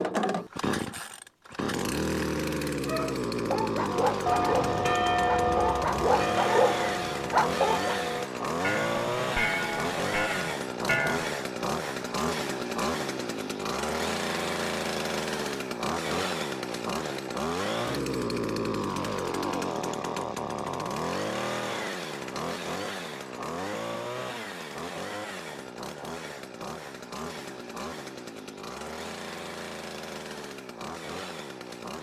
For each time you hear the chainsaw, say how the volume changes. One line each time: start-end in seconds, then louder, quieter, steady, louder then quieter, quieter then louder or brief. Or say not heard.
0.0-31.9 quieter.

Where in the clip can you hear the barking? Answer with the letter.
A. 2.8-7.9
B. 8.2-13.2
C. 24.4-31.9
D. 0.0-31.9
A.